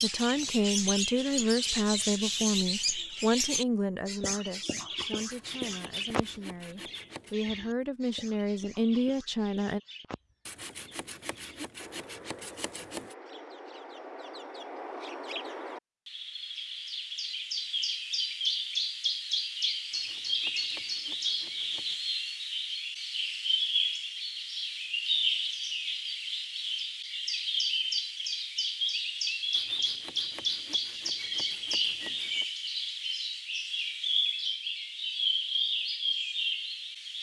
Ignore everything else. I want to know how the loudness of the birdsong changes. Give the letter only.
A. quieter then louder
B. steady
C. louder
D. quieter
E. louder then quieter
A.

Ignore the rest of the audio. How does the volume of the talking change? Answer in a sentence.
The volume of the talking goes down, then up.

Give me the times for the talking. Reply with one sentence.
The talking can be heard from 0.0 to 9.8 s.